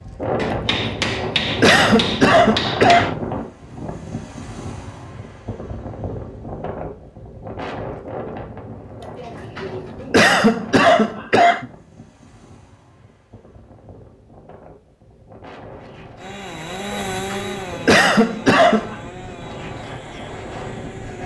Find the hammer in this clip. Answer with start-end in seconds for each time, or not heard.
0.3-3.1.